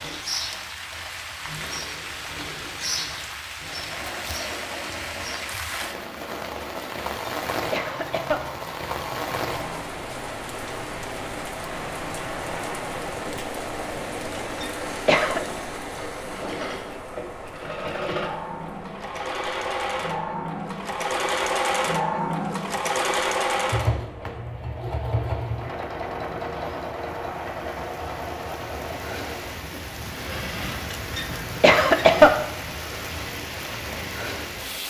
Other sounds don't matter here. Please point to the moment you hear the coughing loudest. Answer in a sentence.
The loudest moment of the coughing is at 32 seconds.